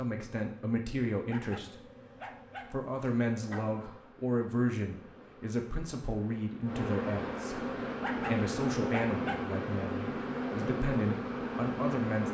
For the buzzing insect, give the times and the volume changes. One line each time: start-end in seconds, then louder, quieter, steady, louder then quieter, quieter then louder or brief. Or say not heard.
0.0-12.2 louder.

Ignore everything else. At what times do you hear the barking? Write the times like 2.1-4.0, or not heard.
1.2-3.6, 8.0-9.4.